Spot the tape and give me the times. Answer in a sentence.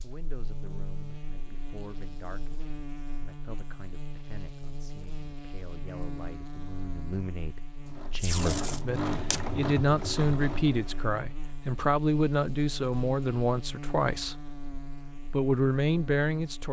You can hear the tape from 8.2 to 9.4 s.